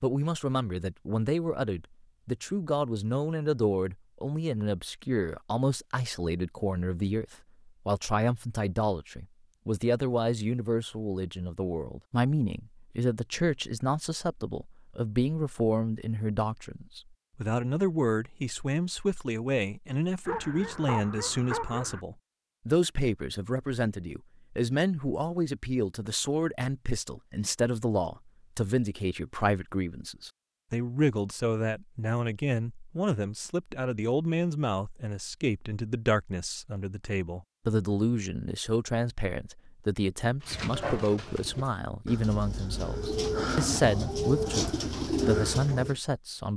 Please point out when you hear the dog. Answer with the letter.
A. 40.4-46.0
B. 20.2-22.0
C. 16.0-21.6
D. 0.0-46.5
B.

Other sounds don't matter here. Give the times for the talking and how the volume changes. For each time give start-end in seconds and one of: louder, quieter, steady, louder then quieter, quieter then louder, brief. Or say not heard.
0.0-46.5 steady.